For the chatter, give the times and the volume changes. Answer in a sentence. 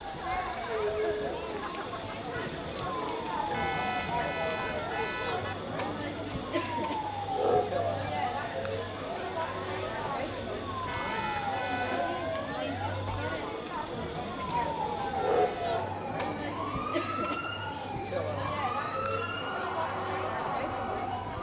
You can hear the chatter from 0.0 to 21.3 s, at a steady volume.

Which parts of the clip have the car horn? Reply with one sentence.
The car horn can be heard from 3.5 to 5.5 s, from 10.8 to 12.0 s and from 15.3 to 15.8 s.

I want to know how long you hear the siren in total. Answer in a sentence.
The siren can be heard for 21 seconds in total.